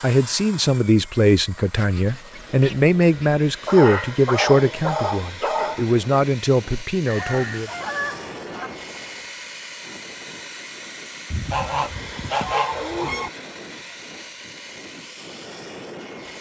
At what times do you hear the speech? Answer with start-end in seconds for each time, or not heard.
0.0-7.7.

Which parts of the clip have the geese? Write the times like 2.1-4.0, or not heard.
1.8-3.3, 7.0-8.8, 11.3-13.3.